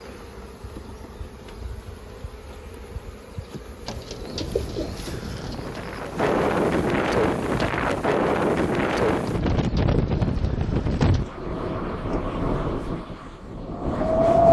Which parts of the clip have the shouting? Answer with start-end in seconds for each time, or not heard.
not heard.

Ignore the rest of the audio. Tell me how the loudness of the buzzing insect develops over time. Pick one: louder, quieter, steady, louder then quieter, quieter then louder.
steady.